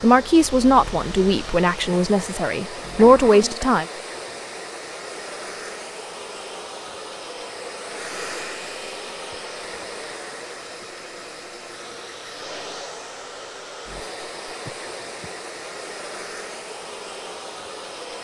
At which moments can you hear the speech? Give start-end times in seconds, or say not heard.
0.0-3.9.